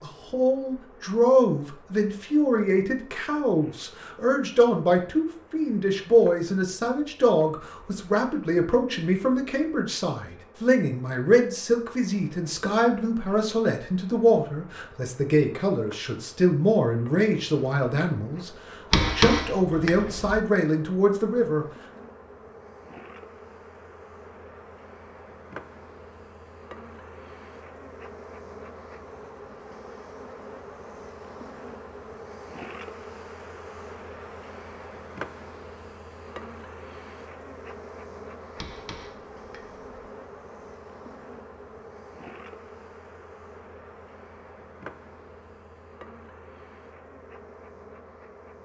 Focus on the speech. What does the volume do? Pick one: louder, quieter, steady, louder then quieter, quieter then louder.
steady.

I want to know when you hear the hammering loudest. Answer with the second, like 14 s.
19 s.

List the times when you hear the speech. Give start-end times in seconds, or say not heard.
0.0-21.6.